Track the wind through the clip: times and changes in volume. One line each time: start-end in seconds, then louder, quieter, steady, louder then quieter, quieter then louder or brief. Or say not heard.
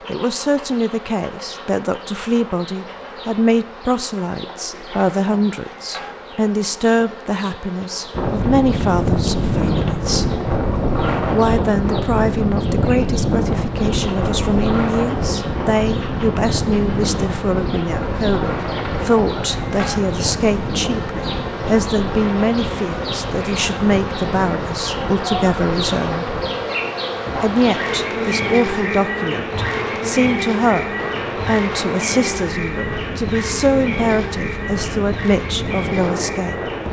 8.1-36.8 quieter.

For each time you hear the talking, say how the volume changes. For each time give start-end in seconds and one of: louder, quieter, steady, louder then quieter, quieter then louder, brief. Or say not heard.
0.1-10.2 steady
11.3-26.3 steady
27.4-36.8 steady.